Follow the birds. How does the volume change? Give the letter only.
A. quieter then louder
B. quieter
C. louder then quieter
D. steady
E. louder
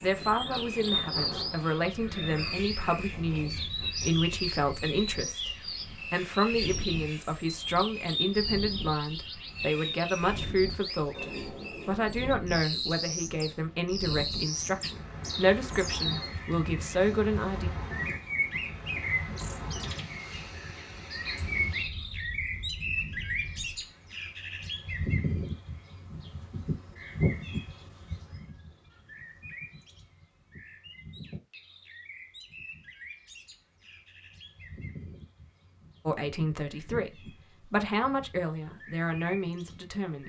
B.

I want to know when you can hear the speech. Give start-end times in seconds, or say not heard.
0.0-11.2, 11.8-17.7, 36.0-40.2.